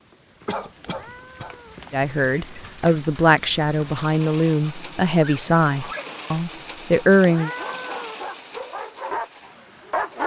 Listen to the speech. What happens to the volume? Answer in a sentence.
The loudness of the speech stays about the same.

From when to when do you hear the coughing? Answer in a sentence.
You can hear the coughing from 0.5 to 1.6 s.